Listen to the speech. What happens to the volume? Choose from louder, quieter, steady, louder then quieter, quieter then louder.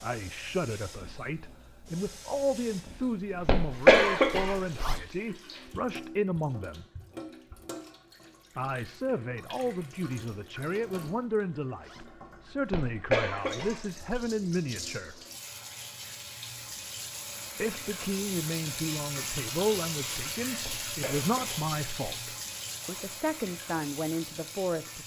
steady.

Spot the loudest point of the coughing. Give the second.
4 s.